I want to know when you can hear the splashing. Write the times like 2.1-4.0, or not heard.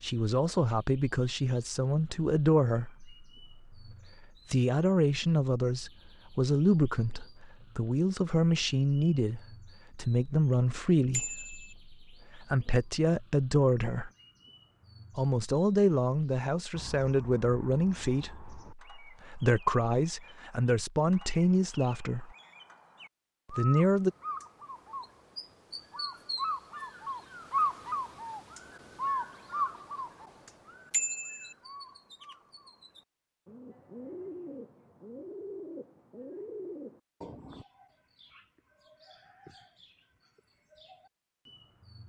not heard.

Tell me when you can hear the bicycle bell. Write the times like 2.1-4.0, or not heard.
11.1-11.8, 30.9-31.6.